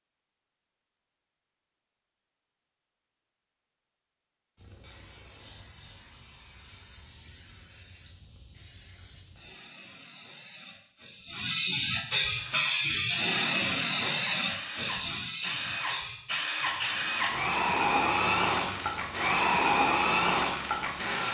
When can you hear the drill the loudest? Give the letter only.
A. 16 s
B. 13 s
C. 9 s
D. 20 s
D.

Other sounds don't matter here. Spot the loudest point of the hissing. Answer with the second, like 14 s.
13 s.